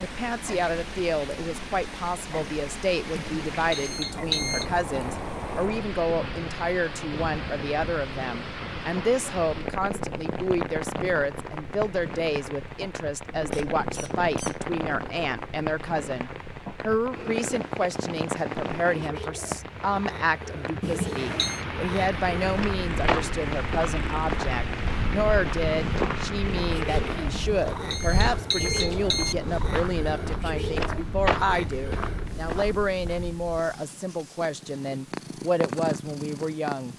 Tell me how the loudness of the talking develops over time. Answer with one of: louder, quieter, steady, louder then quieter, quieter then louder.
steady.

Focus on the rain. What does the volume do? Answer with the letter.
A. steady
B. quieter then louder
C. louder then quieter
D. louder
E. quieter
A.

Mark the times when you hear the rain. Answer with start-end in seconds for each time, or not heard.
0.0-27.6.